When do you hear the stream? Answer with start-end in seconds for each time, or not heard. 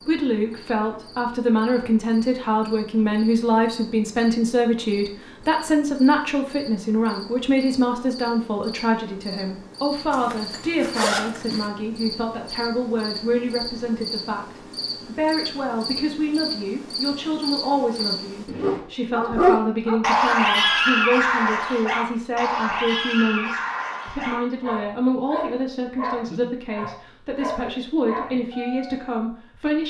not heard.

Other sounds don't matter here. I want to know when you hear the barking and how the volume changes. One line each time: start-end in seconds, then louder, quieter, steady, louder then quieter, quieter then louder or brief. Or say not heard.
18.6-29.0 quieter.